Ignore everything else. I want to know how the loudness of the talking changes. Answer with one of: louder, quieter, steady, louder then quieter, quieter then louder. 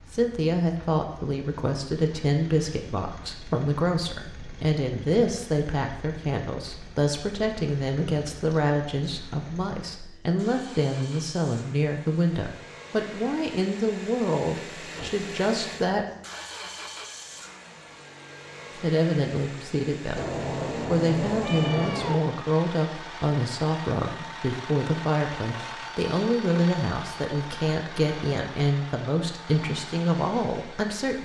steady.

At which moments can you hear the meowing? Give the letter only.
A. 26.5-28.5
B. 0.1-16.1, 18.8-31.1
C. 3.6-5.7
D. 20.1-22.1
D.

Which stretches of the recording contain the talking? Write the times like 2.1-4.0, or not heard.
0.1-16.1, 18.8-31.1.